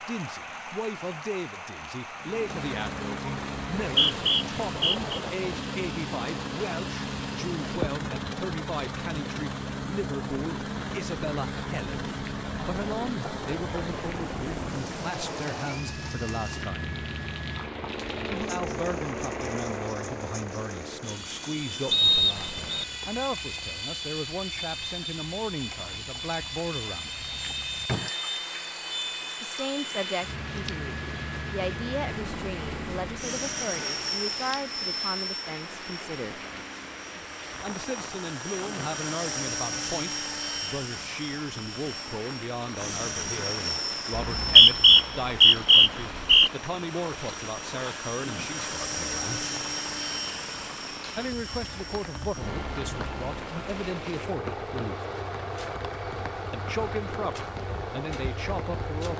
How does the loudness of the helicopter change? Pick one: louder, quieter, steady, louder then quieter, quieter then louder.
steady.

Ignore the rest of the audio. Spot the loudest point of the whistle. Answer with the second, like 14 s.
45 s.